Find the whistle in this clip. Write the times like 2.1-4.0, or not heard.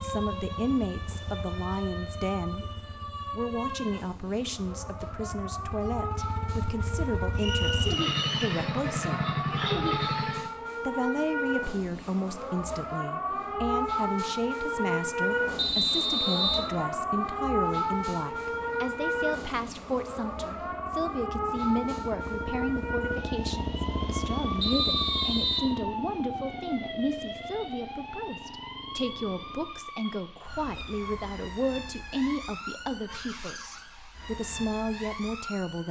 7.3-8.6, 15.6-16.7, 24.6-25.7.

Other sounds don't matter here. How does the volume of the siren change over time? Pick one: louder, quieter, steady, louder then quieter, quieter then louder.
louder then quieter.